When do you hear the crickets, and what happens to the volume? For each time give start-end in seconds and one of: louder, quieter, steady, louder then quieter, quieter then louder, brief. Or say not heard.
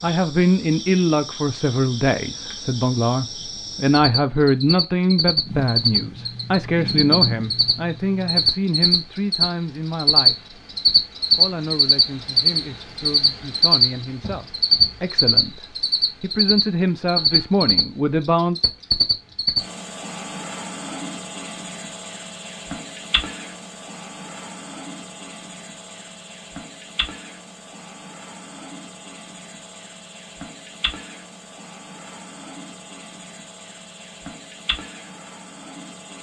0.0-36.1 louder then quieter.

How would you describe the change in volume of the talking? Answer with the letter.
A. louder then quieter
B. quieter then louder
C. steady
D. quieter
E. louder
B.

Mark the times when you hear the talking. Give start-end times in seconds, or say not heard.
0.0-10.6, 11.3-18.6.